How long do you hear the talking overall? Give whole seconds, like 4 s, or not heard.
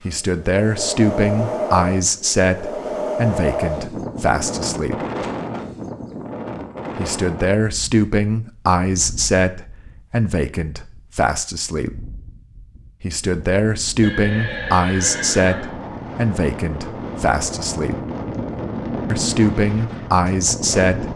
17 s.